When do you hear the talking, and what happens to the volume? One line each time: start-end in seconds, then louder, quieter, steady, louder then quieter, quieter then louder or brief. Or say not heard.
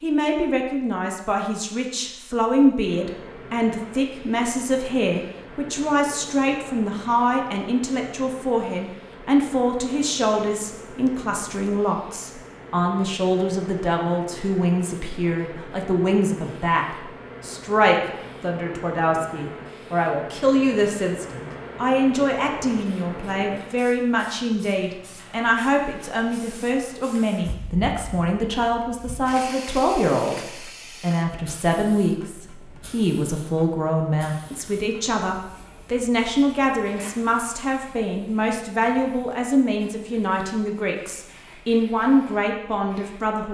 0.0-43.4 steady.